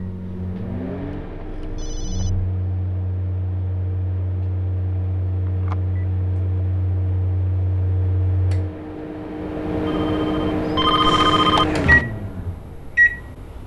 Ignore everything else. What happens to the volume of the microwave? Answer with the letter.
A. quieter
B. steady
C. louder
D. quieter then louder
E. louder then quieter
C.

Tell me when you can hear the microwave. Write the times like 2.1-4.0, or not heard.
0.0-13.6.